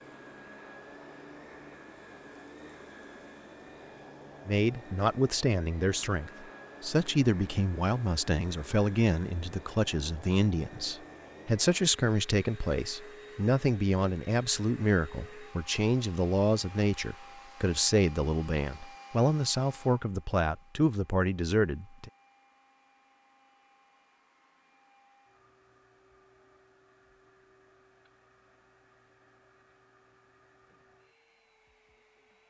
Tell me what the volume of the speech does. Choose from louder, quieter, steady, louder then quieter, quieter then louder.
steady.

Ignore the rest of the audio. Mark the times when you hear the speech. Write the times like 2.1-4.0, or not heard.
4.5-22.1.